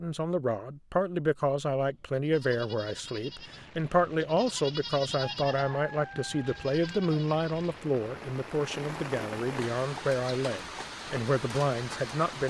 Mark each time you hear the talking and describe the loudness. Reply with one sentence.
You can hear the talking from 0.0 to 12.4 s, at a steady volume.